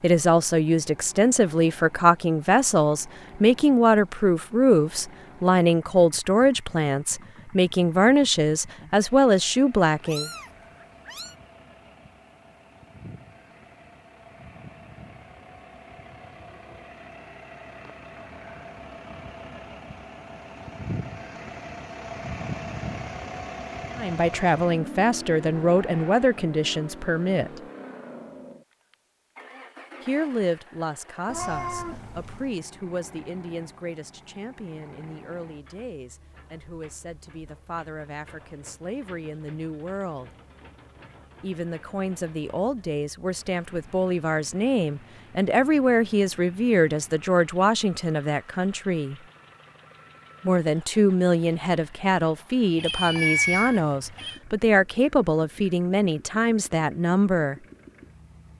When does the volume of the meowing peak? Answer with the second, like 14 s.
53 s.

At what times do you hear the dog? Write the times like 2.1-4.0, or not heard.
not heard.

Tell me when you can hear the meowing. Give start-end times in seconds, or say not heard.
10.0-11.3, 31.2-32.5, 52.8-54.4.